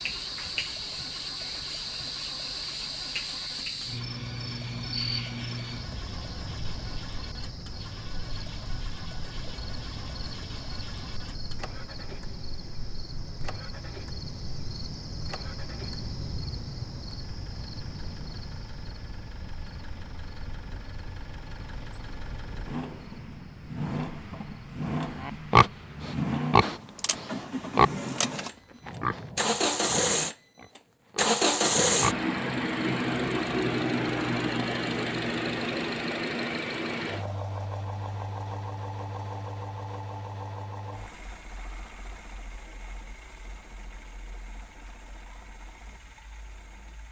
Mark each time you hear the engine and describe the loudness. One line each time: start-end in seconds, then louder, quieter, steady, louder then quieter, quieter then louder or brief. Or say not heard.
0.0-47.0 louder then quieter.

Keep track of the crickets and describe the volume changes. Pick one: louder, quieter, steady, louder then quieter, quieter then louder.
quieter.